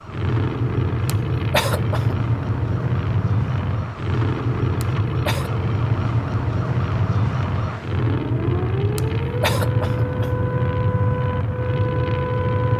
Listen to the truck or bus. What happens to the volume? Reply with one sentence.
The loudness of the truck or bus stays about the same.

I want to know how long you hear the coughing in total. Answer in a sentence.
You can hear the coughing for 3 seconds altogether.